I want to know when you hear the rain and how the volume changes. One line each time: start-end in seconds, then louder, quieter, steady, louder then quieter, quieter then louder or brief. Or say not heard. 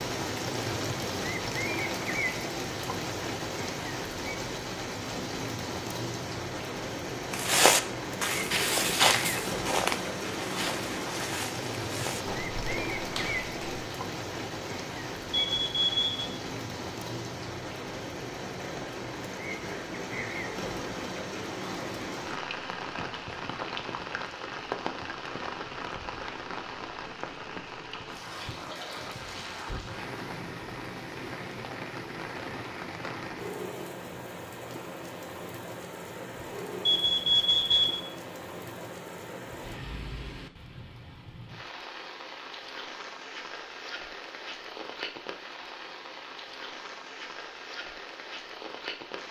0.0-49.2 quieter.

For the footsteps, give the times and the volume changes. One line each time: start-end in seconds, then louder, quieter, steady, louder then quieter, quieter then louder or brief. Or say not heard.
7.3-13.8 quieter.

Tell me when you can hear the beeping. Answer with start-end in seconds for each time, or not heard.
15.3-16.2, 36.9-38.0.